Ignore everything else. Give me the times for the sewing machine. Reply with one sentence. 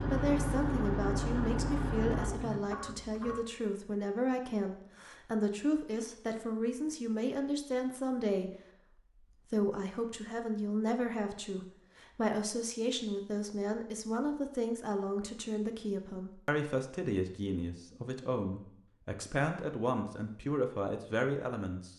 You can hear the sewing machine from 0.0 to 3.5 s.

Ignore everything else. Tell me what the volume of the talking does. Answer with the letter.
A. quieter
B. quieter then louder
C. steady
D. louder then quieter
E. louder
C.